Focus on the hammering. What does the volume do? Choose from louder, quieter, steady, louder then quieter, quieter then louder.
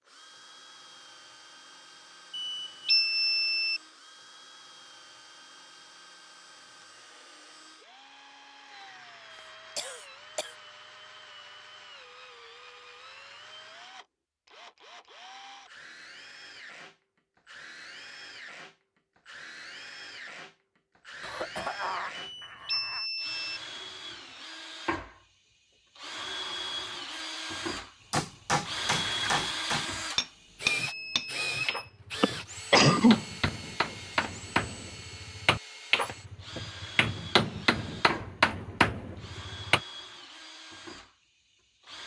quieter then louder.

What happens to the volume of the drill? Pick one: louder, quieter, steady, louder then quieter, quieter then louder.
louder then quieter.